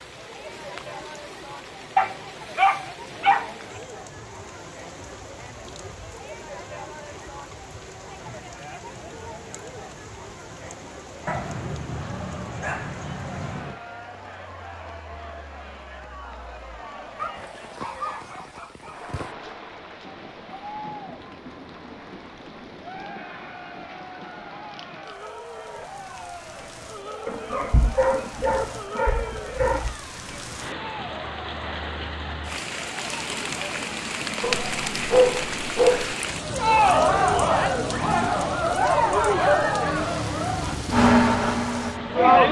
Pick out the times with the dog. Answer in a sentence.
The dog can be heard from 1.9 to 3.8 s, from 11.2 to 13.8 s, from 17.1 to 19.2 s, from 27.2 to 29.9 s and from 34.4 to 36.1 s.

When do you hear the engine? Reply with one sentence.
The engine can be heard from 37.0 to 42.4 s.